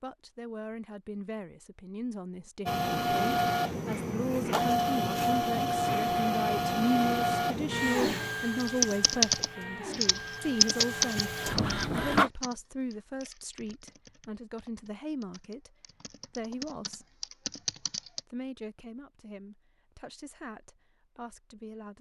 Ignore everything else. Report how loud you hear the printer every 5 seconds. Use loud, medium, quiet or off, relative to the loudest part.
loud, loud, loud, off, off.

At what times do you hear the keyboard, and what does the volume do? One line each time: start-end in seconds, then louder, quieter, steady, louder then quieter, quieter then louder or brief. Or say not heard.
8.6-18.2 quieter then louder.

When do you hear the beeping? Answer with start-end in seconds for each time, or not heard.
not heard.